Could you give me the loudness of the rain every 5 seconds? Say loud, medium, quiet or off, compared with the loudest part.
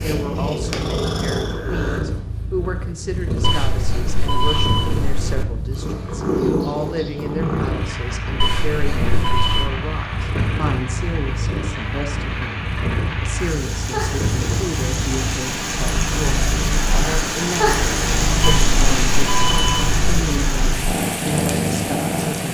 off, medium, medium, loud, medium.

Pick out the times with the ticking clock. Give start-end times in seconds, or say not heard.
not heard.